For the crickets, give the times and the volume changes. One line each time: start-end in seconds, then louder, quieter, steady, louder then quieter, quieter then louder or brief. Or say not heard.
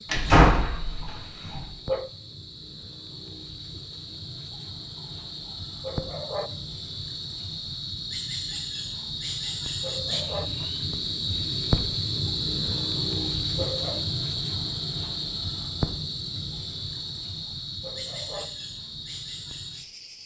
0.0-20.2 louder then quieter.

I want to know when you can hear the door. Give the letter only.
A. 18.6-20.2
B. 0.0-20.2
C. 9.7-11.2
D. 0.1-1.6
D.